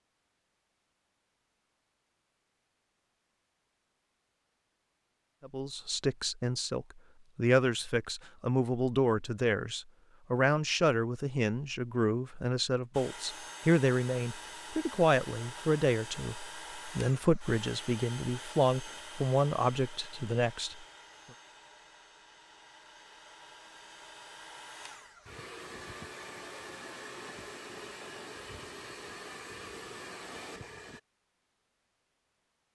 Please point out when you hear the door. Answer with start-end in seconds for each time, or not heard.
not heard.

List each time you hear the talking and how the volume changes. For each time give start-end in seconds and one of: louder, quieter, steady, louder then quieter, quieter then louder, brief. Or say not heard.
5.5-20.8 steady.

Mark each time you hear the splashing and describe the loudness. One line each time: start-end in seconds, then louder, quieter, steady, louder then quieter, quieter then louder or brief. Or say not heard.
not heard.